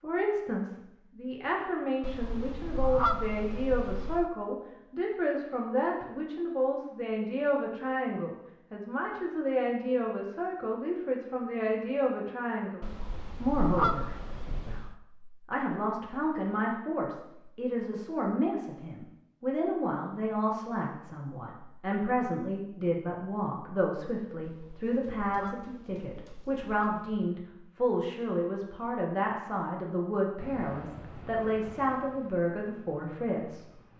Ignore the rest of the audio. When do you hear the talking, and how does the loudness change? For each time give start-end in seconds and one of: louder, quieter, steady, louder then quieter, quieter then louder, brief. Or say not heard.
0.0-33.8 steady.